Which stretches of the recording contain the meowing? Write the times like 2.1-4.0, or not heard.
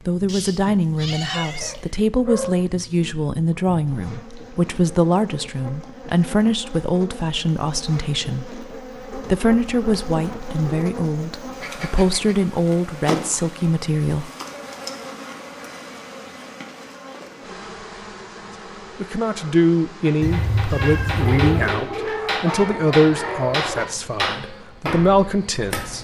0.2-1.9, 20.2-21.8.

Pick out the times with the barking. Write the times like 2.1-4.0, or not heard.
1.4-2.7, 9.1-10.9, 21.2-23.9.